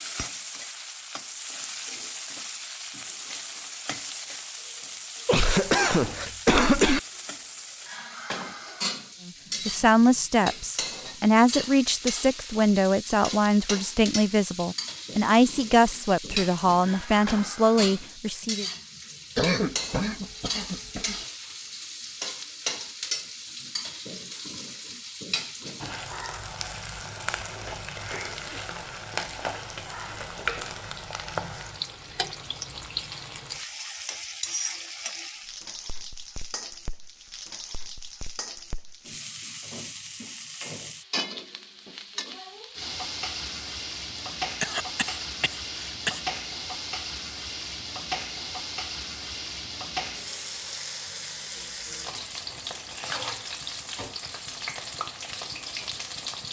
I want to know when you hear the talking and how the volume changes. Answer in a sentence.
You can hear the talking from 9.2 to 18.6 s, at a steady volume.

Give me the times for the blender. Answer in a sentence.
The blender can't be heard in this clip.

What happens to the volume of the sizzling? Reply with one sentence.
The volume of the sizzling stays about the same.